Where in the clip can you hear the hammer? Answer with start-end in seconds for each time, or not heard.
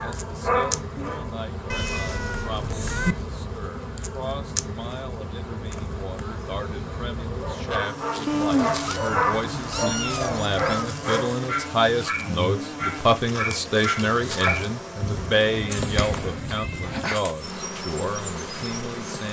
not heard.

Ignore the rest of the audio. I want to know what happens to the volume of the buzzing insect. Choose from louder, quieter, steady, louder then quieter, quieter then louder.
steady.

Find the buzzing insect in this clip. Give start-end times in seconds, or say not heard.
0.0-19.2.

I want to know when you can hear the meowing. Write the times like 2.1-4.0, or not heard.
1.7-3.1, 8.2-10.9, 15.0-17.2.